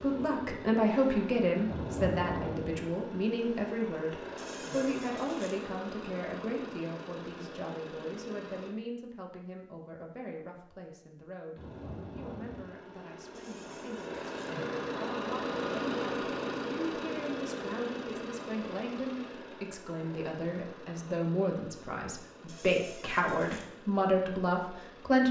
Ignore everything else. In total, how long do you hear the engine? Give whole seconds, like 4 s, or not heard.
22 s.